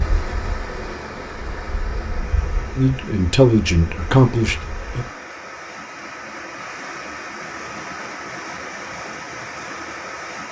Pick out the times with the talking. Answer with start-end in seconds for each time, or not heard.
2.8-5.0.